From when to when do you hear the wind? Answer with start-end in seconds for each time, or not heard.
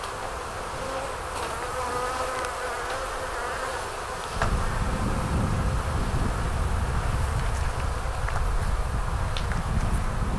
0.0-10.3.